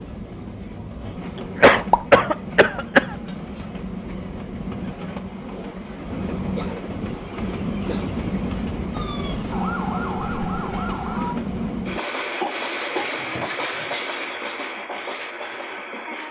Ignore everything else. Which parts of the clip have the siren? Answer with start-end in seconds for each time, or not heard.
8.9-11.3.